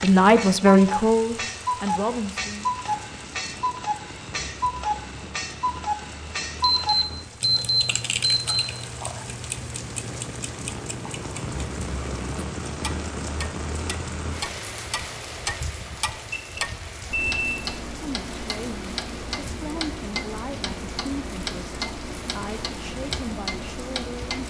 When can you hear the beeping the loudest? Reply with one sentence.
The volume of the beeping peaks at 8 seconds.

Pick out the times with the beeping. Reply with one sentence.
The beeping can be heard from 6.6 to 8.6 s and from 15.8 to 17.6 s.